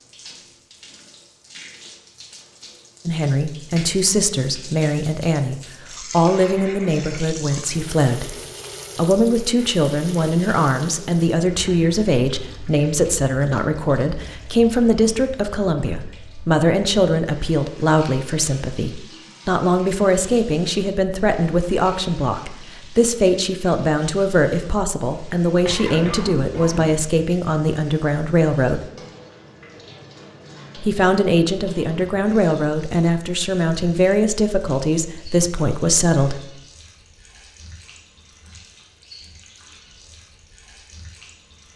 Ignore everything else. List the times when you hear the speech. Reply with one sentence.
The speech can be heard from 3.0 to 8.3 s, from 8.9 to 28.8 s and from 30.8 to 36.4 s.